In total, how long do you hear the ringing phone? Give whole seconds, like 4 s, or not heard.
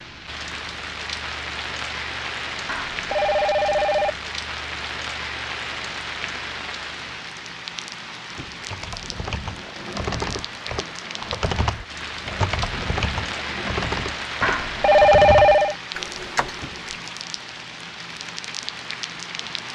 3 s.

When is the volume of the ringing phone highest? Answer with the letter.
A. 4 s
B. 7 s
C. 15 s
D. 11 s
C.